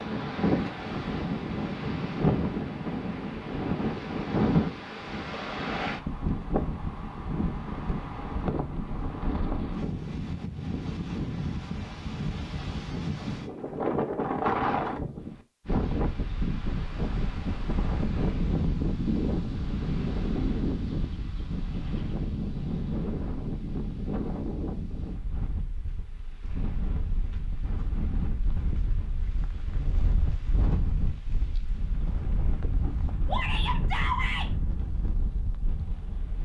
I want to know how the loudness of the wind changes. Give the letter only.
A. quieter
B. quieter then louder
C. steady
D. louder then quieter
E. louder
A.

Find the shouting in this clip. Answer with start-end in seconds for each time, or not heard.
33.2-34.5.